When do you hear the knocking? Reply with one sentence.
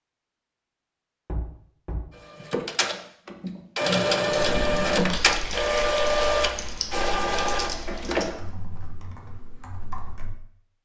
The knocking can be heard from 1.2 to 2.0 s and from 7.0 to 8.4 s.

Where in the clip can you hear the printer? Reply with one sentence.
The printer can be heard from 2.1 to 8.2 s.